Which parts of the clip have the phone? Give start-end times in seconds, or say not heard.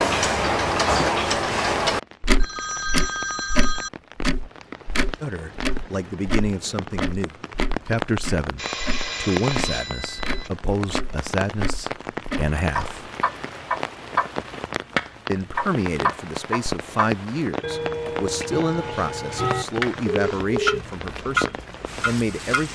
2.4-3.9, 8.6-10.5, 20.1-20.9.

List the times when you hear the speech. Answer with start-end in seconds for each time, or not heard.
5.2-13.1, 15.2-22.7.